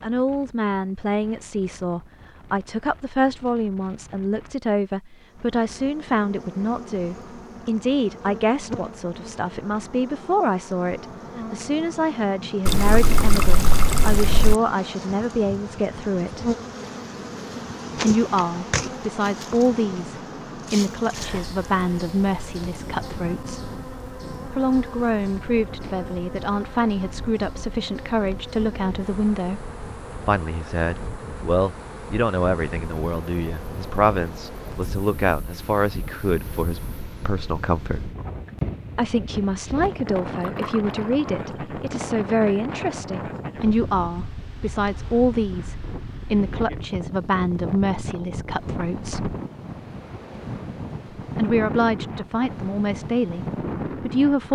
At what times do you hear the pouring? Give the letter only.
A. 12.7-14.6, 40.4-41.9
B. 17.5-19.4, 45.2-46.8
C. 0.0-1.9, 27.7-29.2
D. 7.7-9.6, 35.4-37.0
A.